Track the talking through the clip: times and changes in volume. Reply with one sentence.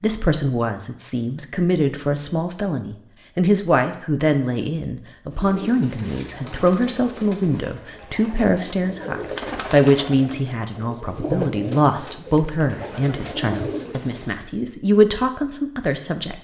You can hear the talking from 0.0 to 16.3 s, at a steady volume.